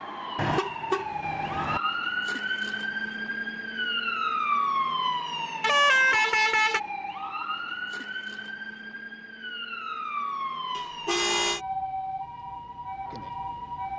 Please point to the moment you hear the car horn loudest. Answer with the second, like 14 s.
6 s.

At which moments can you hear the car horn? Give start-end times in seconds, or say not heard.
0.3-1.8, 5.6-6.8, 10.7-11.6.